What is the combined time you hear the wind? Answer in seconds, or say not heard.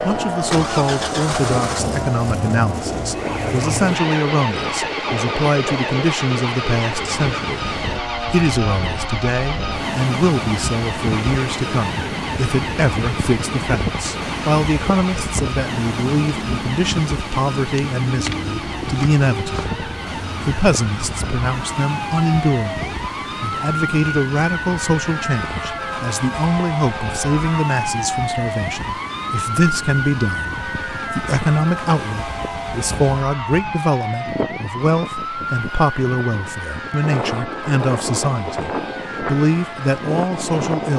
41 s.